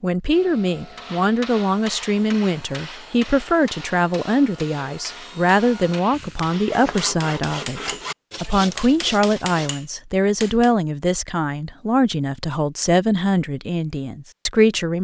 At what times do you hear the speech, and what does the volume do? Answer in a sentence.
You can hear the speech from 0.0 to 14.9 s, at a steady volume.